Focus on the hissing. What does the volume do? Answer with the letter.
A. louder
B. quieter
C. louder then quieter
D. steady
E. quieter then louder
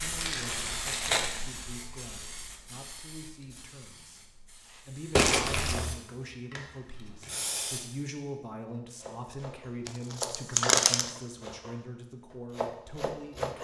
E.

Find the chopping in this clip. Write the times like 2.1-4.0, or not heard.
8.7-13.5.